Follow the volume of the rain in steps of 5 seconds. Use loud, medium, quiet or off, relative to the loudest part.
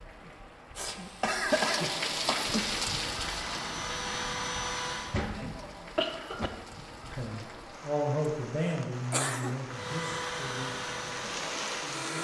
loud, medium, loud.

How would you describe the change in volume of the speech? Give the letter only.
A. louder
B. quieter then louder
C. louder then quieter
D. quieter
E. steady
D.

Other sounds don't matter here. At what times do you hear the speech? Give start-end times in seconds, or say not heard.
7.0-12.1.